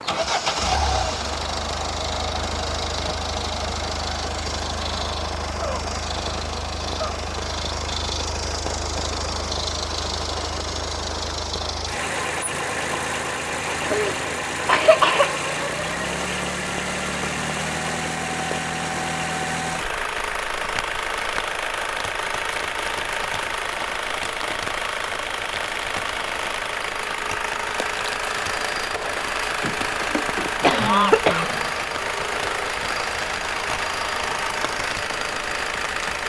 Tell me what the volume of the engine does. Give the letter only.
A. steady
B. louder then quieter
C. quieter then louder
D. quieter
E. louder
A.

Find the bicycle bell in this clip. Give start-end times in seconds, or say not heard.
not heard.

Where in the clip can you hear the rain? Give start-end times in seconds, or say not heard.
0.0-36.2.